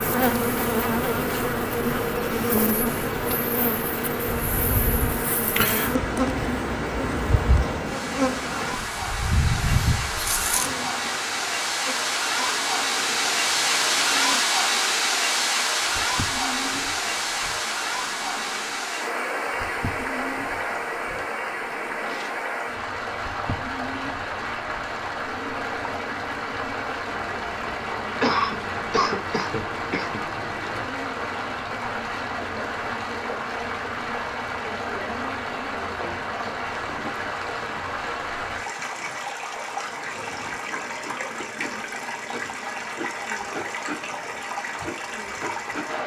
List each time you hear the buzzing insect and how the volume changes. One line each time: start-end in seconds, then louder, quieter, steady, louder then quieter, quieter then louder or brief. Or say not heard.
0.0-46.0 quieter.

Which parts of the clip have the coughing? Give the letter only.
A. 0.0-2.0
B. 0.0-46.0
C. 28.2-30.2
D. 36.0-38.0
C.